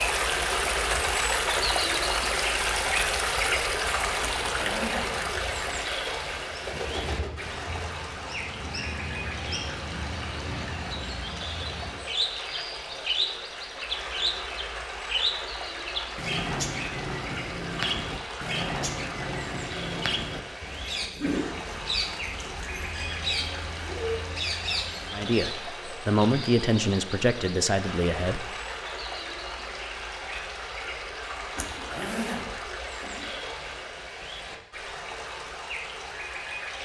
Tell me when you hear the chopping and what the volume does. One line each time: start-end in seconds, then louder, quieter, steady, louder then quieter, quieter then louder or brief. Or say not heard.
not heard.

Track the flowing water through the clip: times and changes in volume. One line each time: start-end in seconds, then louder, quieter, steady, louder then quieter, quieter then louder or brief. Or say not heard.
0.0-36.8 quieter.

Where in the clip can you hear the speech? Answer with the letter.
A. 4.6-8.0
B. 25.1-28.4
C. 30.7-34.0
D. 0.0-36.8
B.